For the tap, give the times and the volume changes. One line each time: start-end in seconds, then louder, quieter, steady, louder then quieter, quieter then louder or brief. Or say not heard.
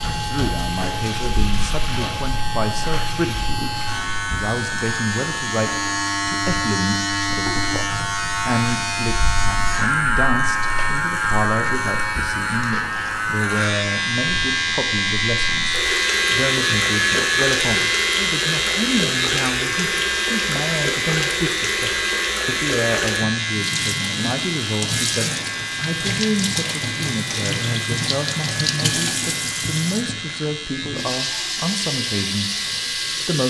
0.0-33.4 louder.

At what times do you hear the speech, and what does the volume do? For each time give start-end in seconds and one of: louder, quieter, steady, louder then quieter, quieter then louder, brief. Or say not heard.
0.1-33.4 steady.